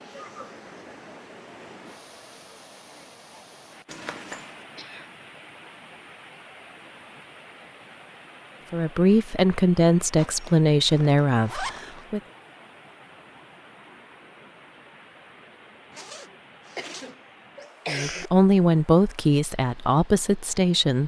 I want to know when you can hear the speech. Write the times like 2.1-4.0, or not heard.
8.7-12.2, 17.9-21.0.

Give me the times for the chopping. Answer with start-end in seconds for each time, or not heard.
not heard.